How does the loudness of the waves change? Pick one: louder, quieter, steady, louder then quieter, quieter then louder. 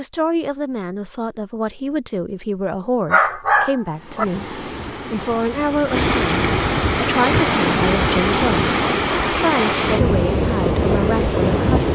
louder.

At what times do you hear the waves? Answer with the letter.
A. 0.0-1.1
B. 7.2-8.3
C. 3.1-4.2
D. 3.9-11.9
D.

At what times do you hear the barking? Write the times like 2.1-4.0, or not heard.
3.1-4.2.